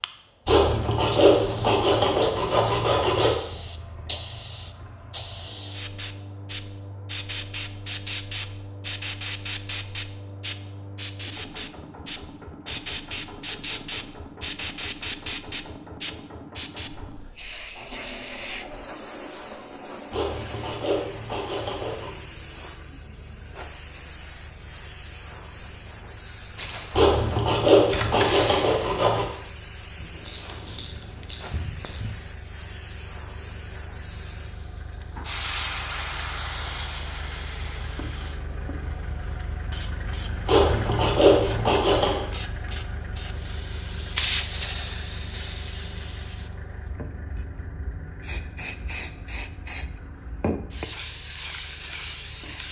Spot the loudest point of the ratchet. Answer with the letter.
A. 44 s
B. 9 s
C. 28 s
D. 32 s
C.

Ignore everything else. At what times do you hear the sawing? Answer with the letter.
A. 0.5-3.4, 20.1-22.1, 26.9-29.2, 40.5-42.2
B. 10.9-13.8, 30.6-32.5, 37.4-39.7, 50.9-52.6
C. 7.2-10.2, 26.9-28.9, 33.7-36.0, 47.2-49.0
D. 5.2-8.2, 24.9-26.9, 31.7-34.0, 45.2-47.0
A.